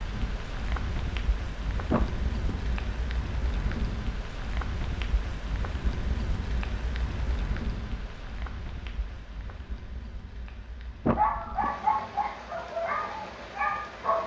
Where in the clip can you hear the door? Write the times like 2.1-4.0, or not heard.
1.9-2.6, 11.1-11.8.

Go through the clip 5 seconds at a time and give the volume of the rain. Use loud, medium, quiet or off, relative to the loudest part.
loud, loud, medium.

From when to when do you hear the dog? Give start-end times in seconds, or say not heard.
11.2-14.2.